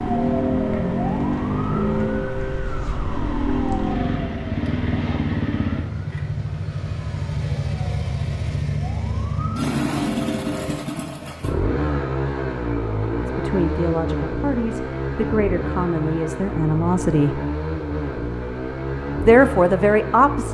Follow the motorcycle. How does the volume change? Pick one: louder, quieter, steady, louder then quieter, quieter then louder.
steady.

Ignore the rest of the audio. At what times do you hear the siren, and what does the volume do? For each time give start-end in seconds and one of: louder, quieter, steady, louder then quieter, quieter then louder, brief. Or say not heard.
0.0-10.8 quieter then louder.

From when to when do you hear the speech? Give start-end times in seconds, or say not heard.
13.2-17.4, 19.2-20.4.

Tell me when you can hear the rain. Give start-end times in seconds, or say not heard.
not heard.